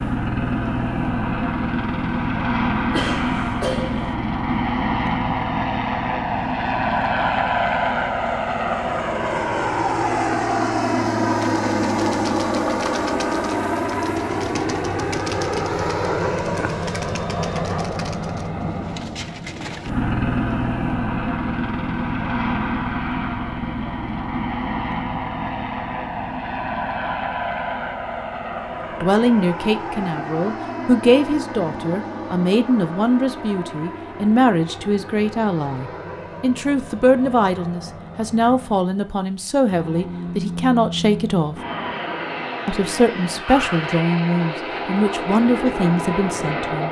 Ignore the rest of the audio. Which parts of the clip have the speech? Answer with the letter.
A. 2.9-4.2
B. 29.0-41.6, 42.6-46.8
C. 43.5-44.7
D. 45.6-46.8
B.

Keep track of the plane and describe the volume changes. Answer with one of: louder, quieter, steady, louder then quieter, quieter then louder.
quieter.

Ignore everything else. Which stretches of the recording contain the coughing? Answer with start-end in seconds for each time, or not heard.
2.9-4.2.